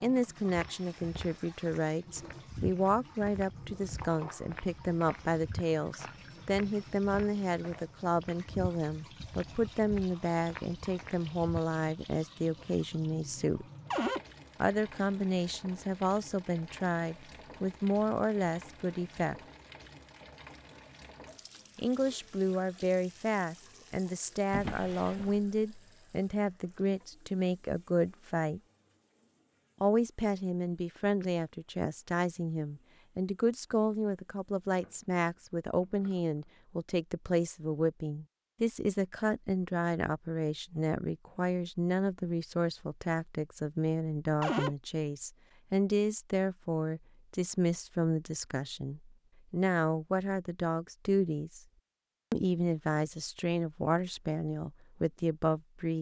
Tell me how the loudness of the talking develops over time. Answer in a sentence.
The volume of the talking stays about the same.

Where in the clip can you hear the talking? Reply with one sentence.
You can hear the talking from 0.0 to 13.7 s, from 14.6 to 19.4 s, from 21.8 to 28.6 s, from 29.8 to 51.6 s and from 52.3 to 55.9 s.